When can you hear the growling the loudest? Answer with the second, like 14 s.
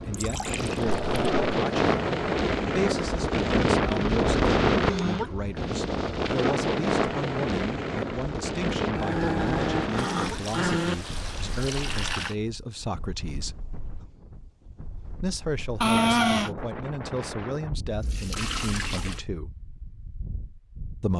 16 s.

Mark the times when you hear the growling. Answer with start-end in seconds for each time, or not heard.
0.8-1.6, 8.9-10.9, 15.8-16.5.